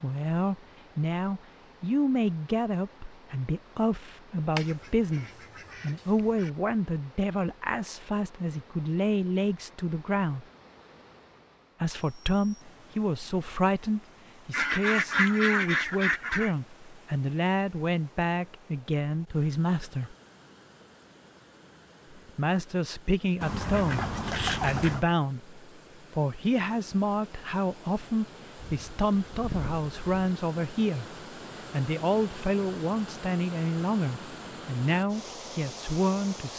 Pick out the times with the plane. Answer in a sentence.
You can't hear the plane here.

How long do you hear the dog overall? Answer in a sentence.
The dog can't be heard in this clip.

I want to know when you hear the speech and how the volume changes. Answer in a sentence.
You can hear the speech from 0.0 to 10.4 s, at a steady volume; from 11.8 to 20.1 s, at a steady volume; and from 22.1 to 36.5 s, at a steady volume.